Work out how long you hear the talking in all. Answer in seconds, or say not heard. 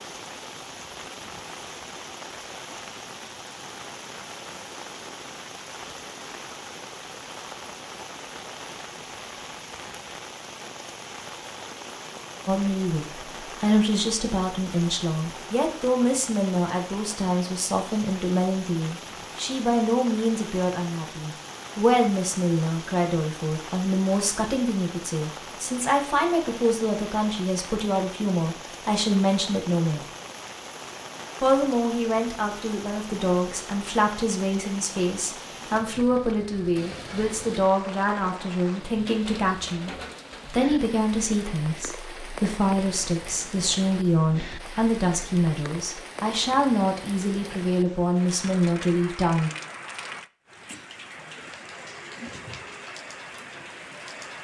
36 s.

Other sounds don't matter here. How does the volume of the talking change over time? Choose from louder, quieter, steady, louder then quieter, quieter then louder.
steady.